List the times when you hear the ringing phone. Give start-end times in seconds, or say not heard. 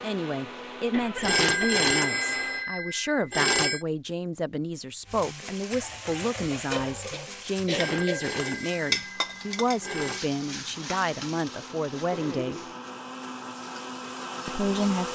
1.2-3.9, 7.7-10.2.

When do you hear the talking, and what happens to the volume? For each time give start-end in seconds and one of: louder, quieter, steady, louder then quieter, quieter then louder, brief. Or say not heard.
0.0-12.6 steady
14.4-15.1 brief.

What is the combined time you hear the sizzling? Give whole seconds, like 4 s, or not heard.
10 s.